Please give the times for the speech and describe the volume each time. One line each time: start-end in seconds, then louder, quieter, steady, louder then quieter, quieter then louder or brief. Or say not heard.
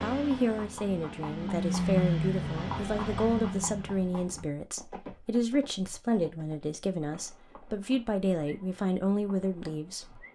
0.0-10.2 steady.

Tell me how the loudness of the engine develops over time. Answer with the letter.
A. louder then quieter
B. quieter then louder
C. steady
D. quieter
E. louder
A.